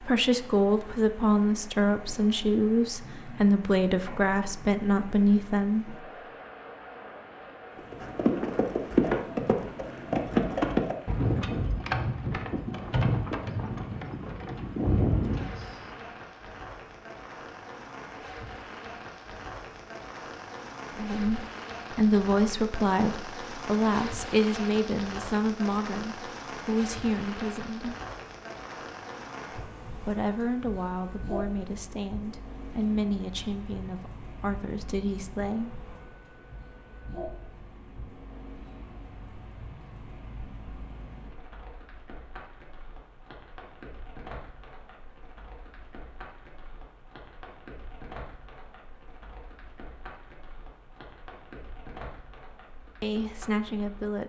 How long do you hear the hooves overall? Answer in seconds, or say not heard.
8 s.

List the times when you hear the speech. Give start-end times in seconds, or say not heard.
0.0-6.0, 20.9-27.9, 29.9-35.8, 53.0-54.2.